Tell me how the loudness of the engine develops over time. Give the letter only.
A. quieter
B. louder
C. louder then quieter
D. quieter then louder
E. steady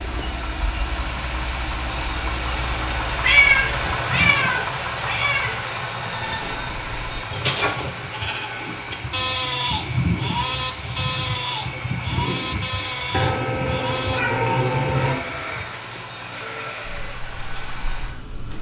A.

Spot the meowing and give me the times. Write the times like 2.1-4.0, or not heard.
3.2-5.5, 13.1-15.2.